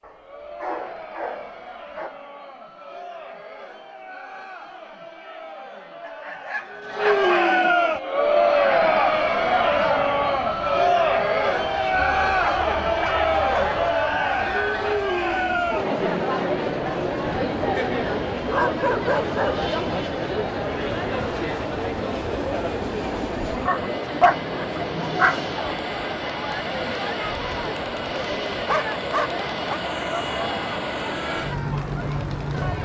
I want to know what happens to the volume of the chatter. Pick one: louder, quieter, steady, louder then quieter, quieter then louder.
louder then quieter.